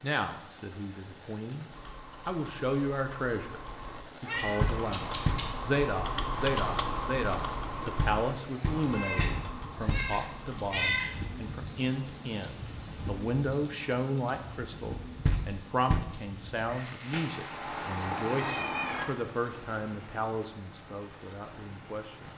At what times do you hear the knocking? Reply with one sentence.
The knocking can be heard from 4.6 to 5.5 s, from 8.0 to 10.2 s and from 15.2 to 16.1 s.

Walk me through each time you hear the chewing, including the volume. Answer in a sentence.
You can't hear the chewing here.